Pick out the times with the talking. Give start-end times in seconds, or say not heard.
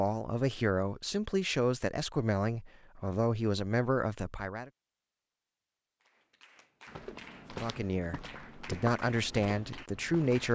0.0-4.7, 7.5-10.4.